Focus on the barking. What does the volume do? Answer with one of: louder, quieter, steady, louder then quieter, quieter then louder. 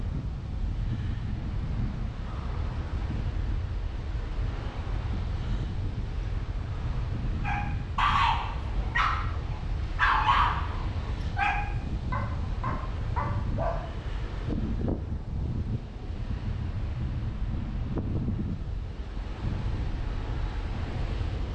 quieter.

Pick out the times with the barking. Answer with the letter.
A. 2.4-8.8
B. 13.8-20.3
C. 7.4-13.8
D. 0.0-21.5
C.